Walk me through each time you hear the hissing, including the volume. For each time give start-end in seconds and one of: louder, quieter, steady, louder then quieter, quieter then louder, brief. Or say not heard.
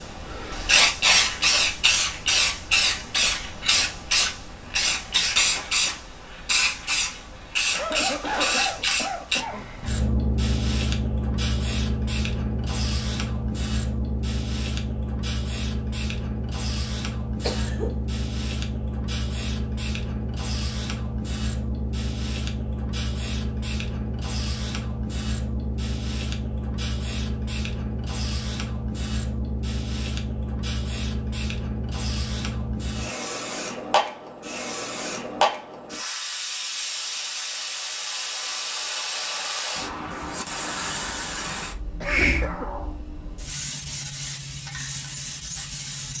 0.0-46.1 quieter.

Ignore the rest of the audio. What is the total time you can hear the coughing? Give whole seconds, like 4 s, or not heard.
3 s.